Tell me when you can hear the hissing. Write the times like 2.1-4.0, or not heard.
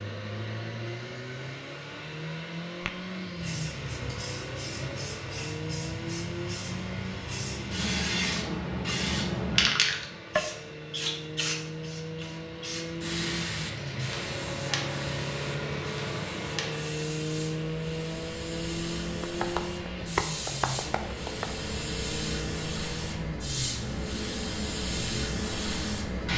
3.4-26.3.